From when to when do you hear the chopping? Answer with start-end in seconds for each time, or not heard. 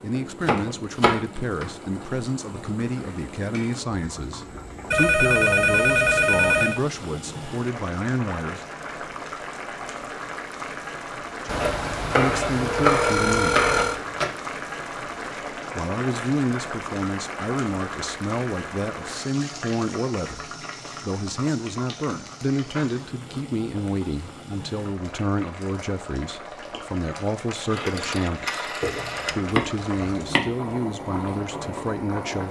0.4-1.8, 11.6-14.3, 28.8-30.5.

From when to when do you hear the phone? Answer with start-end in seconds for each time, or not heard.
4.9-6.8, 11.4-14.1, 27.5-29.6.